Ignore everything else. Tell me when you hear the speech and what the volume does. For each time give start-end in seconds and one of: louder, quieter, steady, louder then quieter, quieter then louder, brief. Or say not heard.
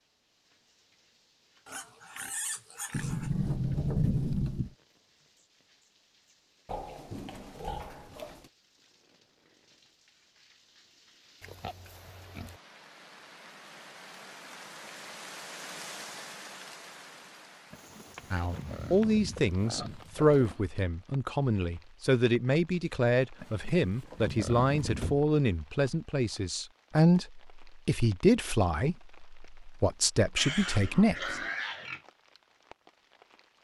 18.3-31.4 steady.